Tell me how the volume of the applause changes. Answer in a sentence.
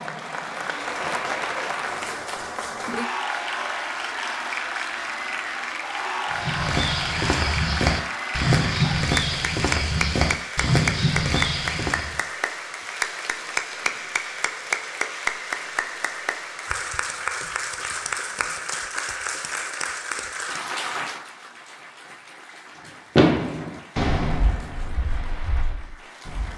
The volume of the applause goes down.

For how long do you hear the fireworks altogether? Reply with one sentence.
The fireworks can be heard for 3 seconds in total.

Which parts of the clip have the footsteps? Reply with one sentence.
You can hear the footsteps from 6.3 to 12.2 s.